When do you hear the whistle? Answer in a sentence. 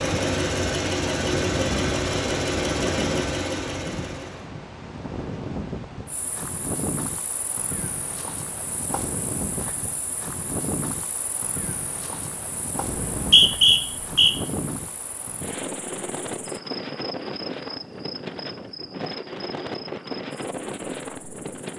You can hear the whistle from 12.9 to 14.3 s.